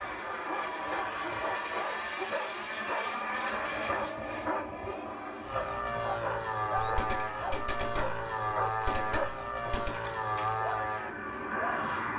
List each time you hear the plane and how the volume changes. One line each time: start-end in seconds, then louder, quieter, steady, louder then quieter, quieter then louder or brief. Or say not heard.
0.0-12.1 steady.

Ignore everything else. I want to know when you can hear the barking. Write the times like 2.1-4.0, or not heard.
0.2-11.8.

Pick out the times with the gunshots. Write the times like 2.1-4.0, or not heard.
6.8-10.0.